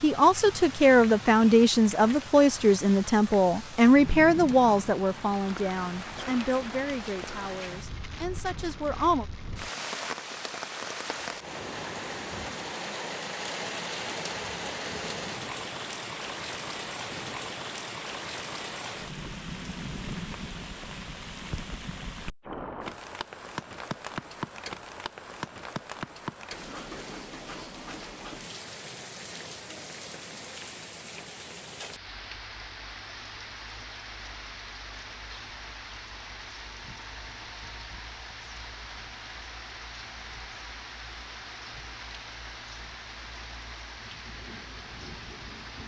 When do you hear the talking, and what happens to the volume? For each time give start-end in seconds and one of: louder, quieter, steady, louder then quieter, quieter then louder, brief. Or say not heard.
0.0-9.2 quieter.